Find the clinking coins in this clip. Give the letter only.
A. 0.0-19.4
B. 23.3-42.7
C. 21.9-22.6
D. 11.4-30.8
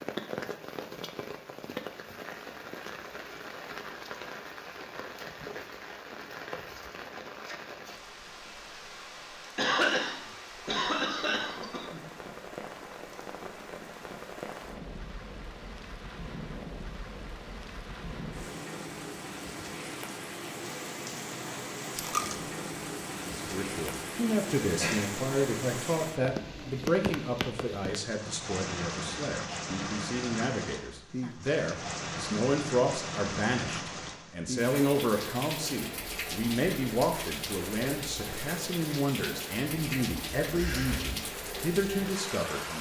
C.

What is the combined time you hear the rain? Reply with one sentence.
You can hear the rain for 43 seconds altogether.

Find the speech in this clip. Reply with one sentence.
You can hear the speech from 23.3 to 42.7 s.